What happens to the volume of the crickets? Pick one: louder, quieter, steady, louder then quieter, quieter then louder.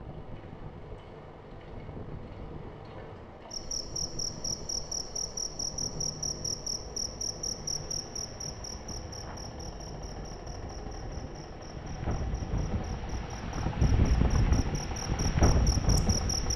quieter then louder.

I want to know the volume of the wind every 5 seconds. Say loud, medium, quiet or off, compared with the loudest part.
quiet, quiet, medium, loud.